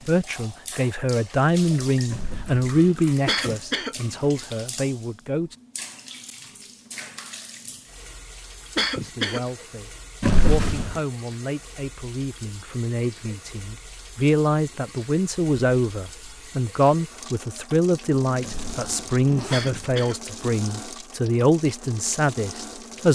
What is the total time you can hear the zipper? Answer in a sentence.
You can hear the zipper for 3 seconds altogether.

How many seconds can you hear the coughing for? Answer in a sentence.
You can hear the coughing for 2 seconds altogether.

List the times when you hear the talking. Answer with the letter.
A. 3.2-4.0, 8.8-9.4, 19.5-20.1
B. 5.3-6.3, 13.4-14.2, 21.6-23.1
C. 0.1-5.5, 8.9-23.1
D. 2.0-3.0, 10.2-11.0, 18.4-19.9
C.